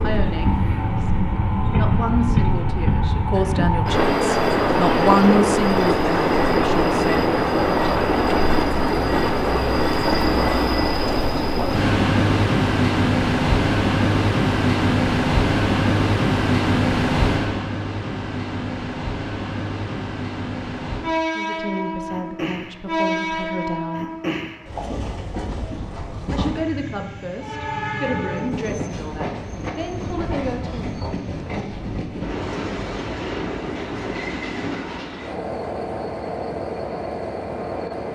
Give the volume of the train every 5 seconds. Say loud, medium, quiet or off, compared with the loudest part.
loud, loud, loud, loud, medium, medium, medium, medium.